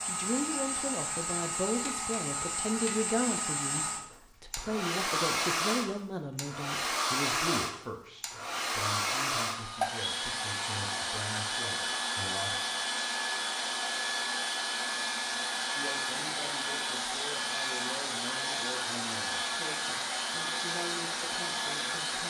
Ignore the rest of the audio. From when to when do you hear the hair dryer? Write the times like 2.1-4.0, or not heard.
0.0-22.2.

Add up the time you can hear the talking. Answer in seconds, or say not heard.
19 s.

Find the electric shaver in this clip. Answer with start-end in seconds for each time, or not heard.
not heard.